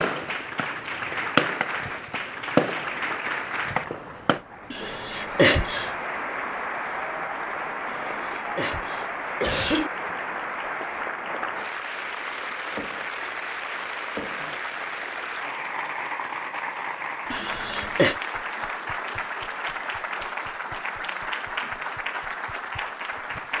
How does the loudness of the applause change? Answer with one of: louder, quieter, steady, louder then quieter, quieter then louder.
steady.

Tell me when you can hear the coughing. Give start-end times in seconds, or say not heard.
4.7-5.9, 7.8-9.9, 17.3-18.1.